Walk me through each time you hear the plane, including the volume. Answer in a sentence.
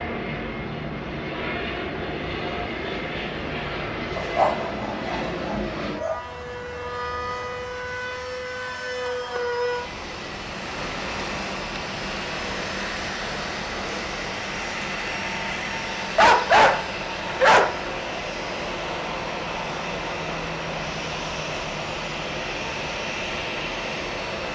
You can hear the plane from 0.0 to 24.5 s, at a steady volume.